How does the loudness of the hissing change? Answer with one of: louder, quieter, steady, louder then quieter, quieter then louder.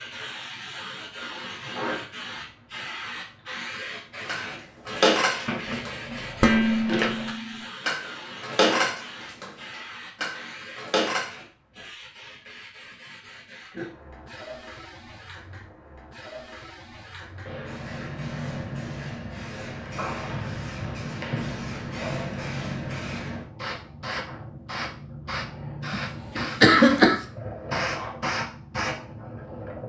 quieter then louder.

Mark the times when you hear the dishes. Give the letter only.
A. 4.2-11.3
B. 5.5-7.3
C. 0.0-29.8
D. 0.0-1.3
A.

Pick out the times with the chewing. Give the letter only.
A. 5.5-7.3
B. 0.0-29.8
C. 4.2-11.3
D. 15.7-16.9
A.